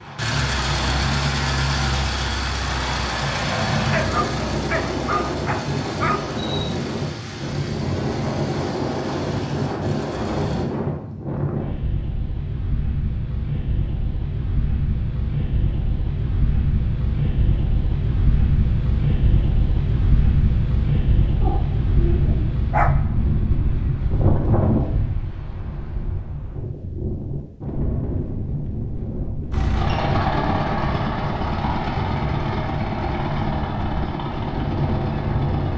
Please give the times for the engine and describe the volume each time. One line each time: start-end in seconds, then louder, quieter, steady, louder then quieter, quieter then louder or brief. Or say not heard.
0.0-10.7 quieter
29.5-35.7 quieter.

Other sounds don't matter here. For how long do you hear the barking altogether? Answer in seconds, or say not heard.
4 s.